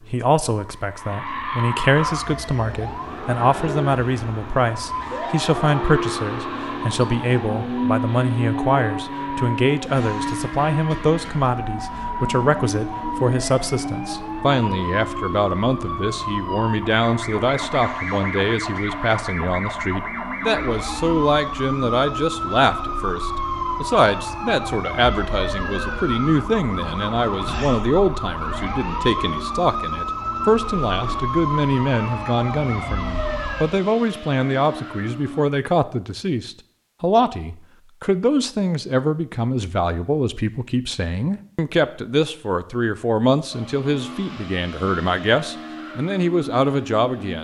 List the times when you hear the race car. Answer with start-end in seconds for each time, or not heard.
0.0-35.5, 43.5-47.4.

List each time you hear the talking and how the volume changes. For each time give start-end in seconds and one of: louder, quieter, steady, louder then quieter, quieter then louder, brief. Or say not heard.
0.1-47.4 steady.